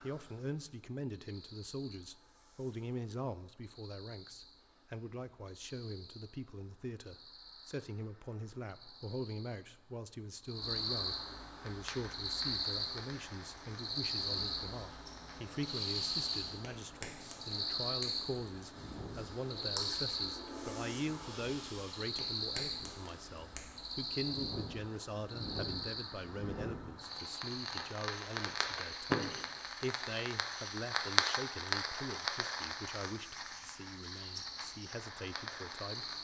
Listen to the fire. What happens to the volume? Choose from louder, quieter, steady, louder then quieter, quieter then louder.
louder.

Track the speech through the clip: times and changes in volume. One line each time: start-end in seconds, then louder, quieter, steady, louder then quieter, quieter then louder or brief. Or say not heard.
0.0-36.0 steady.